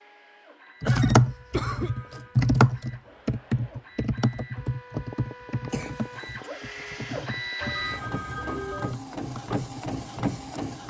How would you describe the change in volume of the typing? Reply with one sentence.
The loudness of the typing goes down.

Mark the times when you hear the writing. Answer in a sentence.
The writing can't be heard in this clip.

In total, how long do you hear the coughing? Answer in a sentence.
You can hear the coughing for 2 seconds altogether.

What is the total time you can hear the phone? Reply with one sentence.
The phone can be heard for 2 seconds in total.